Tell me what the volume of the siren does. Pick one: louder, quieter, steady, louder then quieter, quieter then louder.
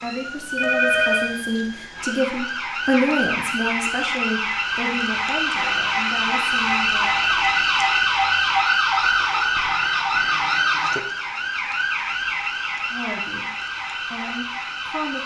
louder then quieter.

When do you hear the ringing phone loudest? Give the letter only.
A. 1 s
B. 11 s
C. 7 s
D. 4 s
A.